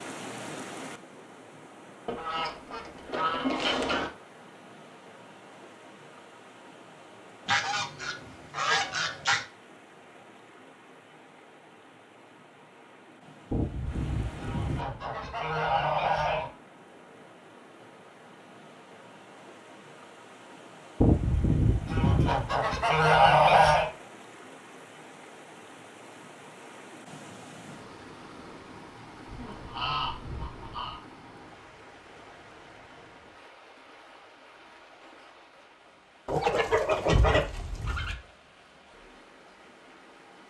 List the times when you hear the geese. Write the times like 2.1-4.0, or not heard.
2.0-4.1, 7.5-9.4, 13.5-16.5, 21.0-23.9, 29.2-31.0, 36.2-38.1.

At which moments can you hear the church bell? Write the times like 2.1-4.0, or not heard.
not heard.